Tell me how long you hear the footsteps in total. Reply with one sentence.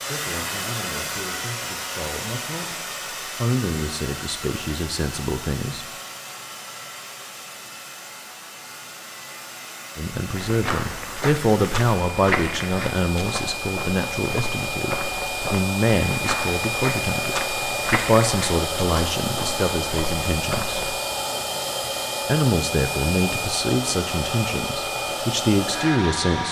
The footsteps can be heard for 11 seconds in total.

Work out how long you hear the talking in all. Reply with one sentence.
You can hear the talking for 21 seconds altogether.